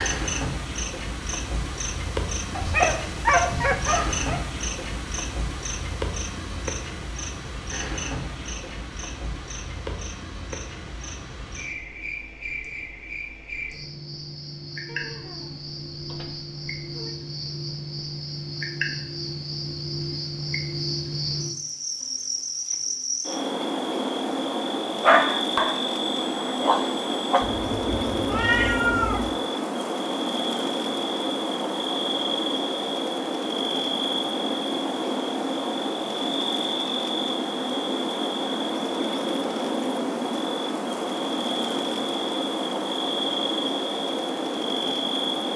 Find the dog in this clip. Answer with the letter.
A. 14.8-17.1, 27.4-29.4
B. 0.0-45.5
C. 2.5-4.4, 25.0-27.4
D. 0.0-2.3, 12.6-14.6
C.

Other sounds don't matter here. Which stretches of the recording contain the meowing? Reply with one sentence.
You can hear the meowing from 14.8 to 17.1 s and from 27.4 to 29.4 s.